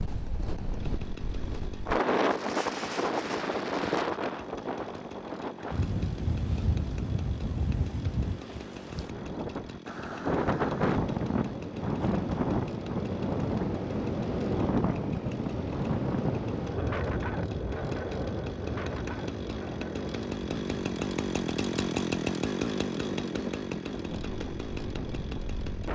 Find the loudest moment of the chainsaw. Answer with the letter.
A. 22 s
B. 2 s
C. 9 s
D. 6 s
A.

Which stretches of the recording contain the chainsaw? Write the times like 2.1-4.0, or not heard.
0.0-25.9.